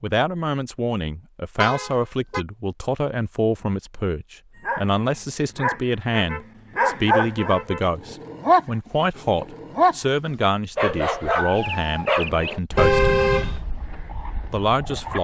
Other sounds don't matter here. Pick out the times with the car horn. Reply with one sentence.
You can hear the car horn from 1.6 to 2.5 s, from 6.1 to 7.9 s and from 12.8 to 13.7 s.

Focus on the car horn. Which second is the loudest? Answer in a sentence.
The loudest moment of the car horn is at 13 seconds.